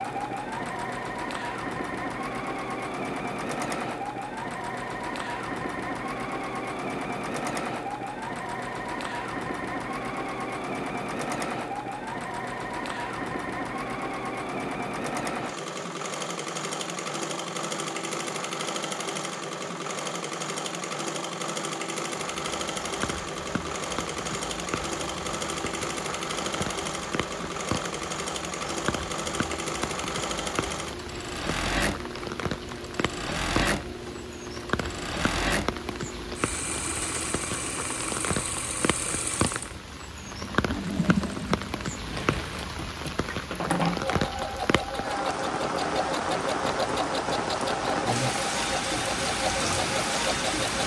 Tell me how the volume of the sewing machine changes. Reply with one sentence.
The loudness of the sewing machine stays about the same.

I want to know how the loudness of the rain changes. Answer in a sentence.
The loudness of the rain goes up.